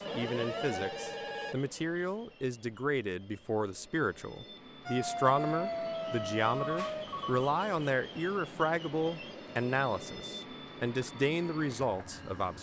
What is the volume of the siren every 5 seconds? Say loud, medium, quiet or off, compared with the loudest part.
medium, loud, off.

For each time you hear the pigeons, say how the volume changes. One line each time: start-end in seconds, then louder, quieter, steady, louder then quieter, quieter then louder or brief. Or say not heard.
not heard.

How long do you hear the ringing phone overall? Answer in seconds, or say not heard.
2 s.